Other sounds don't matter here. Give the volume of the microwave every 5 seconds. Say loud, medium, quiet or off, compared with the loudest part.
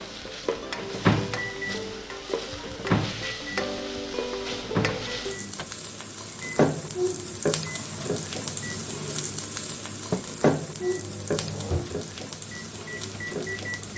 loud, quiet, medium.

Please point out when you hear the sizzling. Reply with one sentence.
The sizzling can be heard from 0.0 to 13.9 s.